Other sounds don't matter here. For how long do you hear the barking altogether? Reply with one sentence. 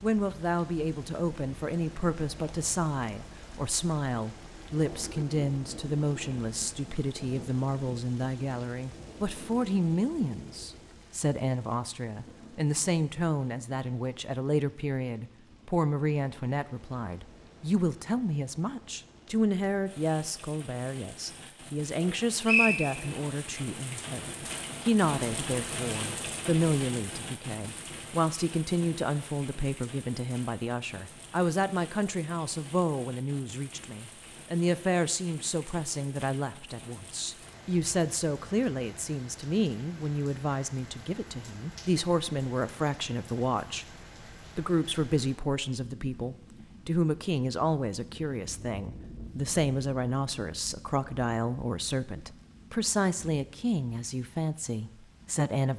You can't hear the barking here.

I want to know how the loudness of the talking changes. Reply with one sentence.
The volume of the talking stays about the same.